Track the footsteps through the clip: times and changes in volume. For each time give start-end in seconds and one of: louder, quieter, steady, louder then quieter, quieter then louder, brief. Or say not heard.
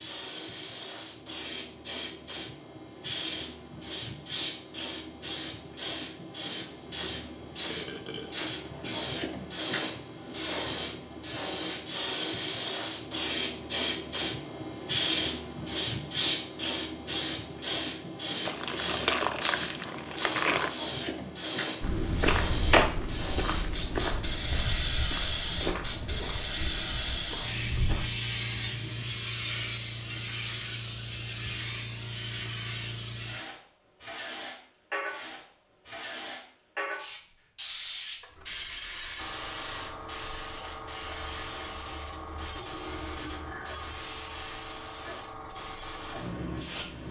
21.8-28.1 quieter.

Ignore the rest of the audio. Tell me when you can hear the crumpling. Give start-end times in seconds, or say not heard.
18.4-20.8.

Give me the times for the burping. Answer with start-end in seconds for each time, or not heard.
7.7-9.2.